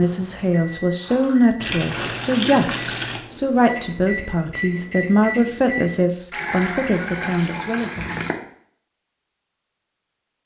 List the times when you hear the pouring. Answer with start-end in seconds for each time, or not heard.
1.6-3.2, 6.3-8.3.